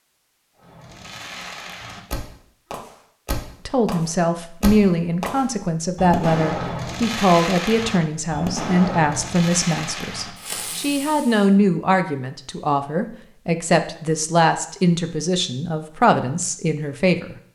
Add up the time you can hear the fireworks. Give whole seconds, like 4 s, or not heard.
11 s.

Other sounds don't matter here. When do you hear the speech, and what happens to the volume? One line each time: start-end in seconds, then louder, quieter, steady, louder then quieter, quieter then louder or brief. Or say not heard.
3.6-17.4 steady.